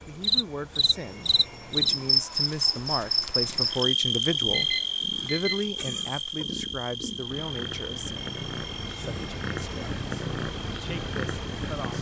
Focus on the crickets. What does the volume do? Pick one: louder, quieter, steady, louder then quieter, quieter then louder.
quieter.